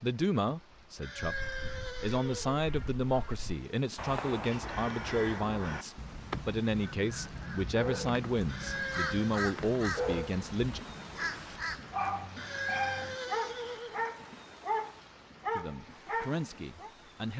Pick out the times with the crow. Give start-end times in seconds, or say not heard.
1.1-12.1.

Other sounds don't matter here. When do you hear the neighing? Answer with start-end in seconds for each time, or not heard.
1.0-2.6, 8.4-9.4, 12.3-13.9.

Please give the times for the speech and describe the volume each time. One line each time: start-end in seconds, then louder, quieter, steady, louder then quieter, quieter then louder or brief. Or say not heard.
0.0-10.8 steady
15.6-17.3 brief.